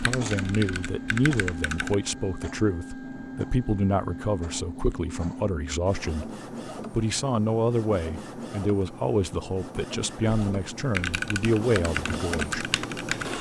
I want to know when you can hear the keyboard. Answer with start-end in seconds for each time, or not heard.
0.0-1.9, 10.2-13.3.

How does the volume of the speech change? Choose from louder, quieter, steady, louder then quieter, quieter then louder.
steady.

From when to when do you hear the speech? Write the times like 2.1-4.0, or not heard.
0.0-6.3, 6.9-12.7.